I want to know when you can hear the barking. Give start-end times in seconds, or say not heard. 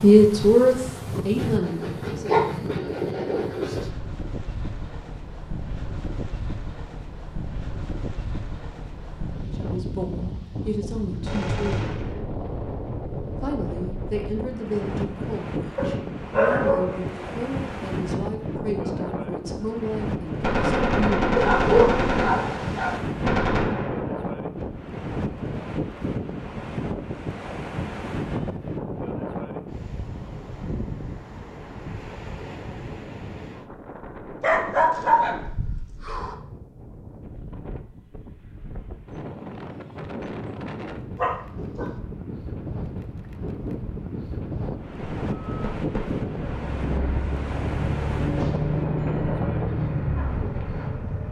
1.4-3.9, 15.8-17.1, 21.4-23.0, 34.4-36.4, 41.1-41.9.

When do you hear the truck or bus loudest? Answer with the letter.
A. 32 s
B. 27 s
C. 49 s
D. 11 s
C.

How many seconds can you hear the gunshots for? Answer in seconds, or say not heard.
6 s.